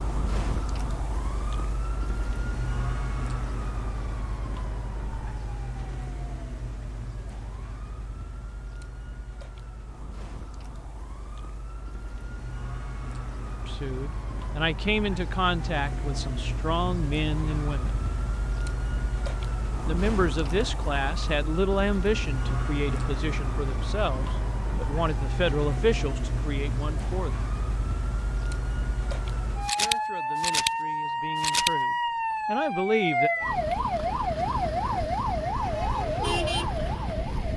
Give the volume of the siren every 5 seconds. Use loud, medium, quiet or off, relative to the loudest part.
medium, quiet, quiet, medium, medium, medium, loud, loud.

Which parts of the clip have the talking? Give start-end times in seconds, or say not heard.
13.7-18.0, 19.9-27.5, 29.8-33.3.